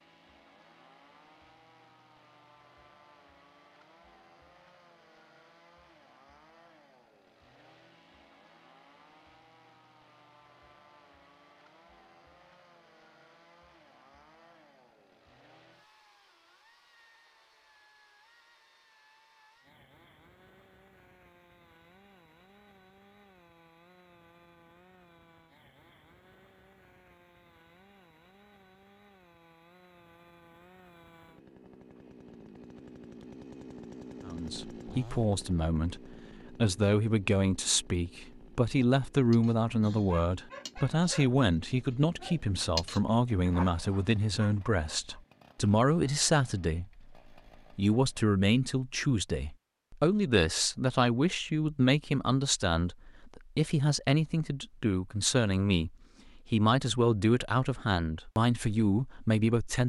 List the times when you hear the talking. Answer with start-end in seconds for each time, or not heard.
34.2-47.0, 47.8-59.8.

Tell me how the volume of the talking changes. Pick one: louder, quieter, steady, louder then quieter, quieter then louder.
steady.